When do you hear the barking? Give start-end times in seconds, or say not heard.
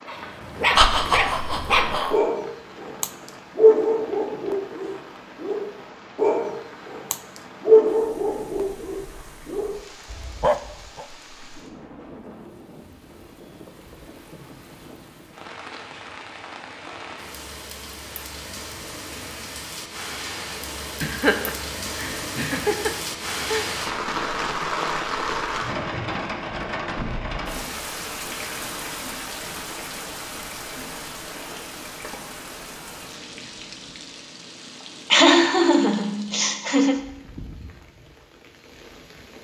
0.1-11.1.